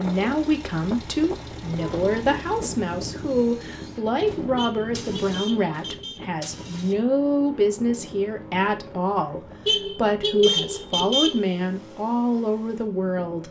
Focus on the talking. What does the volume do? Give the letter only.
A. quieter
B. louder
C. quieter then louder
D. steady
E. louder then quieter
D.